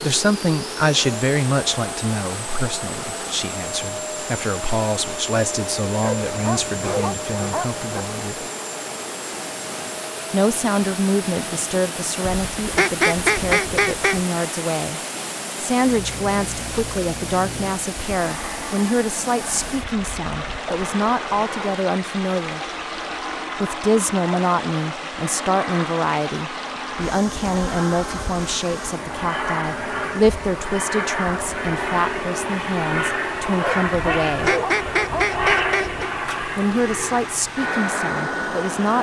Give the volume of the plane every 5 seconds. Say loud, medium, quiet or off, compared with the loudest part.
medium, medium, medium, medium, medium, medium, loud, loud.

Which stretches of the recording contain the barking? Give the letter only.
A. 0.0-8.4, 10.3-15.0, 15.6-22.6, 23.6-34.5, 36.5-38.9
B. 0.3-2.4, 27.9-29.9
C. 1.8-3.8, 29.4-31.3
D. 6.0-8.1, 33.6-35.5
D.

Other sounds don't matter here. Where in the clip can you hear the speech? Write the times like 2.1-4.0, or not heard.
0.0-8.4, 10.3-15.0, 15.6-22.6, 23.6-34.5, 36.5-38.9.